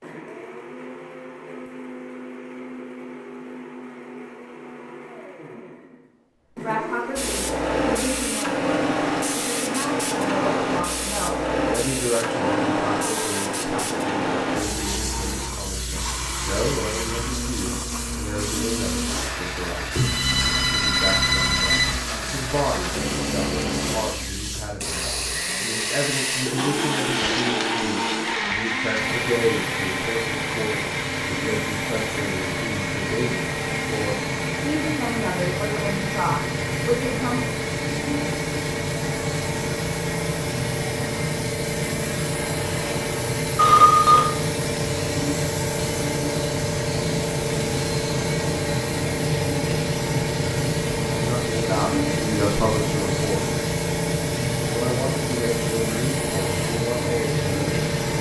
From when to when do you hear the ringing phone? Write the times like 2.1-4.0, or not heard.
19.9-21.9, 43.5-44.2.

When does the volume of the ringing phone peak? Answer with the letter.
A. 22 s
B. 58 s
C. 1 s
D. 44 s
D.